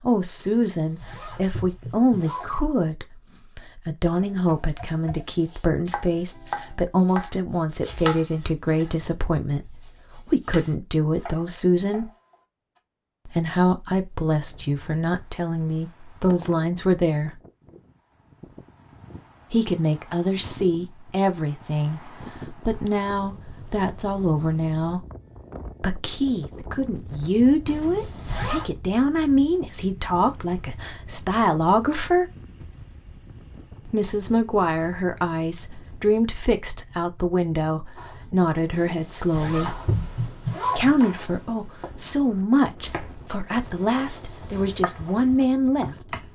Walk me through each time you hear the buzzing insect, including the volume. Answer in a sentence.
The buzzing insect can't be heard in this clip.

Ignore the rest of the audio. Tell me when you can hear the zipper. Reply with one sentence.
You can hear the zipper from 0.3 to 2.6 s, from 27.6 to 28.7 s and from 38.7 to 41.0 s.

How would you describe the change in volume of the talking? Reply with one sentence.
The loudness of the talking stays about the same.